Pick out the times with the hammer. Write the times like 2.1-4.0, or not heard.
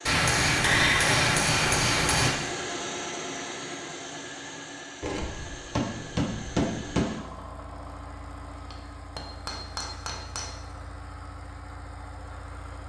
0.1-2.4, 5.0-7.0, 8.7-10.6.